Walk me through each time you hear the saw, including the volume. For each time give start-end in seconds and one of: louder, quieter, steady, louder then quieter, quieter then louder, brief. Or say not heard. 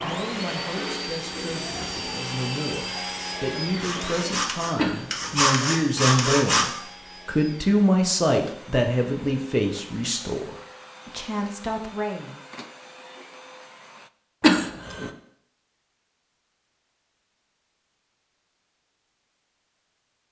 0.0-6.7 louder.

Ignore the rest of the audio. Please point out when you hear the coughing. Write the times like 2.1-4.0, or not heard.
4.8-5.5, 14.4-15.1.